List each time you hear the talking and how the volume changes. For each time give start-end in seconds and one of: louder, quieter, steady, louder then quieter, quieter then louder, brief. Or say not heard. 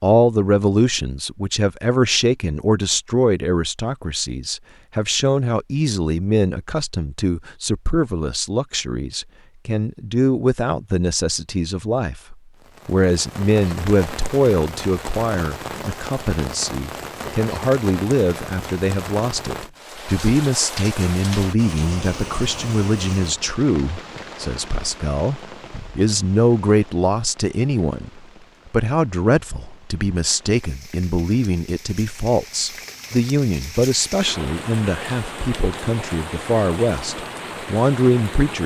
0.0-38.6 steady.